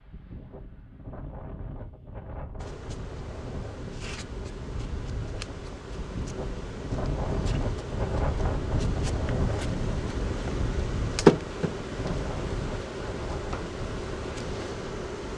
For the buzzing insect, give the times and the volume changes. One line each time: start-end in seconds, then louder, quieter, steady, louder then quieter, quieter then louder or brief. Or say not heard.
2.5-15.3 louder then quieter.